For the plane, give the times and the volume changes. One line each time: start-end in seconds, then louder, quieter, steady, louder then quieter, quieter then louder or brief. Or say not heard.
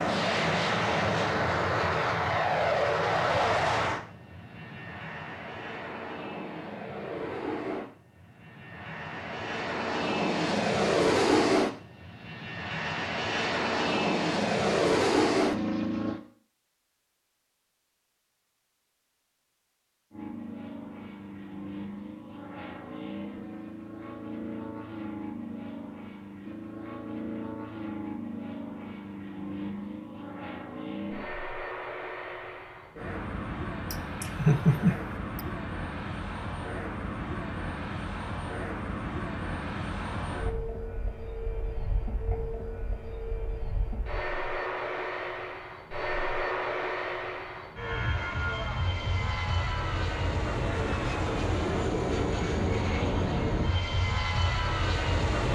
0.0-16.2 quieter then louder
20.1-55.5 louder.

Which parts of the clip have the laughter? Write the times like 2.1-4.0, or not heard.
33.9-35.4.